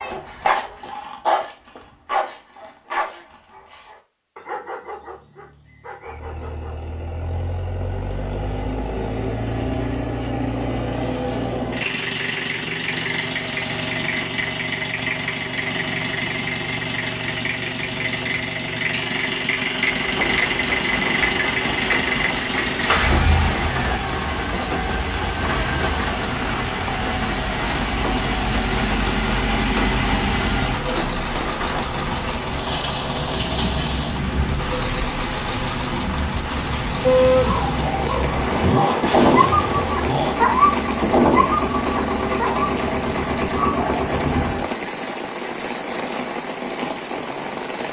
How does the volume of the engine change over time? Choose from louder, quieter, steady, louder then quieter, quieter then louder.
steady.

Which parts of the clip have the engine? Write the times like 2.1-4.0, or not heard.
6.0-44.7.